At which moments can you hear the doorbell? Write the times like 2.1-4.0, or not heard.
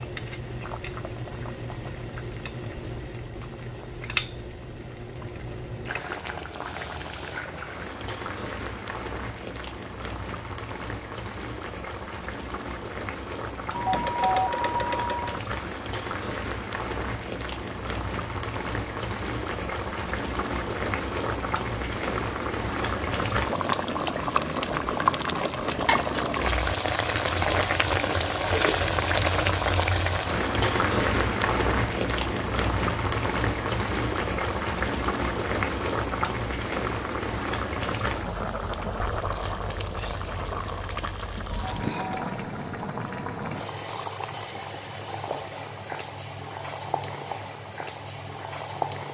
13.7-15.4, 41.5-42.4.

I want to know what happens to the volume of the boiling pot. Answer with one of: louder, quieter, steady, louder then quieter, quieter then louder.
louder then quieter.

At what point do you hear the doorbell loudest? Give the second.
14 s.